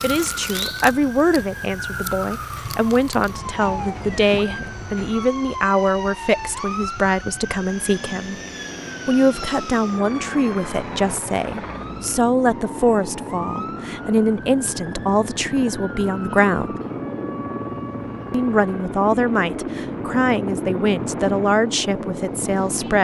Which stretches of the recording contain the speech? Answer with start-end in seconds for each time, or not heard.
0.0-8.3, 9.1-16.8, 18.3-22.9.